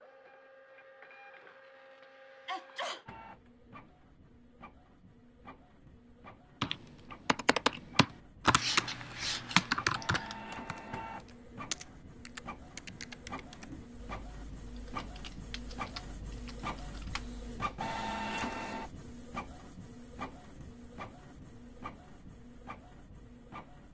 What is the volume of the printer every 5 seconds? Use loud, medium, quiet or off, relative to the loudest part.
quiet, quiet, medium, loud, medium.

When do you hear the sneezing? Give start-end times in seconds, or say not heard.
2.5-3.0.